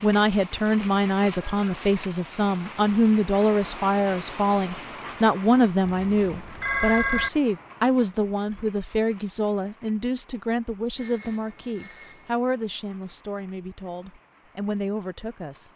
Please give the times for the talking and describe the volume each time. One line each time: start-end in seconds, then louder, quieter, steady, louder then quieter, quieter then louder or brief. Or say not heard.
0.0-15.7 quieter.